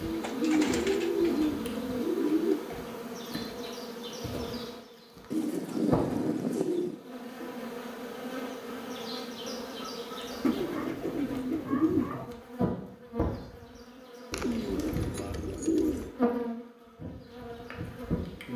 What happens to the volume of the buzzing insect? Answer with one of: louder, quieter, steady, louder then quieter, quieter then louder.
steady.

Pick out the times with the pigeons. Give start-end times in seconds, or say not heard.
0.0-2.6, 5.3-7.0, 10.4-12.2, 14.3-16.1.